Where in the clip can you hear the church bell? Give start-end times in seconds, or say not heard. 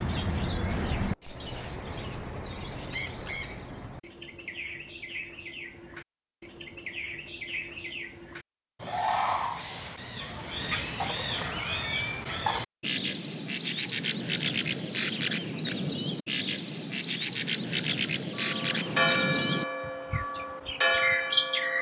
18.4-21.7.